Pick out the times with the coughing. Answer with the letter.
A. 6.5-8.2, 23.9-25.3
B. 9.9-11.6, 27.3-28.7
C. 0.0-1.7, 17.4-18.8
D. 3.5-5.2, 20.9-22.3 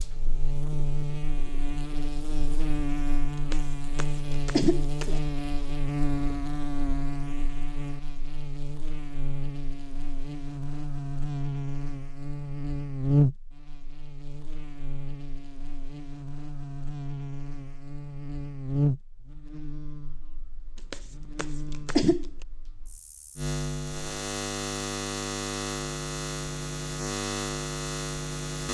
D.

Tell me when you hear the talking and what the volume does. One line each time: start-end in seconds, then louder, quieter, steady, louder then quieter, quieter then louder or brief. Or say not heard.
not heard.